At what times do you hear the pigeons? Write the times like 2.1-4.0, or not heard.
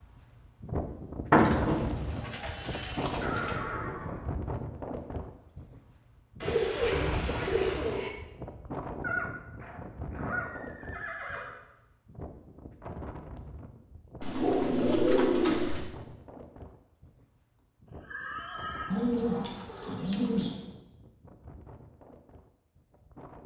1.3-3.5, 6.4-8.1, 14.2-15.8, 18.9-20.6.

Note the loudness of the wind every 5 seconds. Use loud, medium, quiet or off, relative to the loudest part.
loud, medium, medium, quiet, quiet.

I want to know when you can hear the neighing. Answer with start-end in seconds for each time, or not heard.
3.2-4.3, 9.0-11.6, 18.0-18.9.